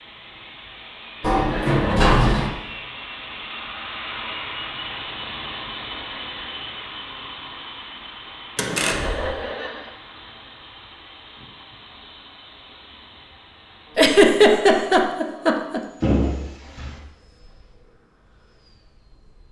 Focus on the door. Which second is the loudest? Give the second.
2 s.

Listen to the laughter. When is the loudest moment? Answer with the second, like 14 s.
14 s.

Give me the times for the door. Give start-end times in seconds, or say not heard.
1.2-2.5, 8.6-9.3, 16.0-17.0.